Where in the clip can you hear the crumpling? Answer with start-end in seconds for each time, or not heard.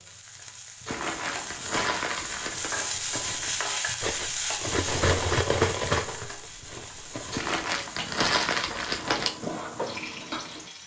0.8-2.8, 7.3-9.3.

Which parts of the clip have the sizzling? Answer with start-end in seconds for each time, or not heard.
0.0-10.8.